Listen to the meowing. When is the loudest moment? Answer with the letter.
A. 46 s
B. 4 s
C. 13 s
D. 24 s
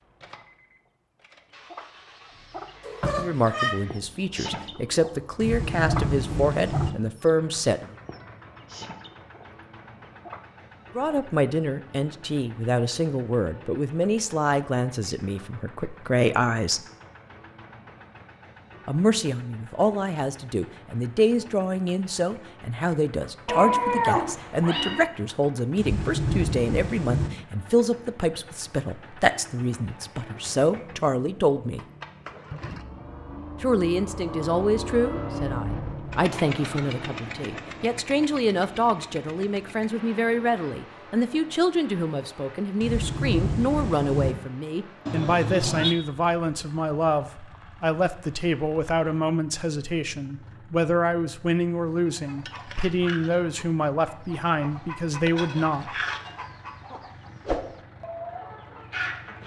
D.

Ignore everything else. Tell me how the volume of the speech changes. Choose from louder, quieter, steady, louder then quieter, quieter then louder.
steady.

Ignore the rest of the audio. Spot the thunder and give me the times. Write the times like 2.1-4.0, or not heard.
5.3-6.9, 25.8-27.3, 42.8-44.4.